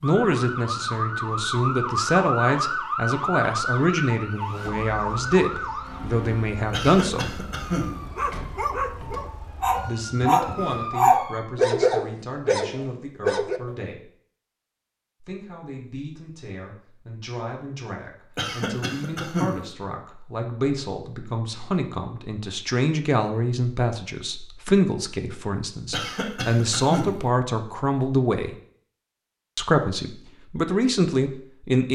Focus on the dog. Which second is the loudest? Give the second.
11 s.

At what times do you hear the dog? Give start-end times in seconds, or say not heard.
8.2-13.6.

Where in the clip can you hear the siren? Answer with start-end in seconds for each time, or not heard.
0.0-11.4.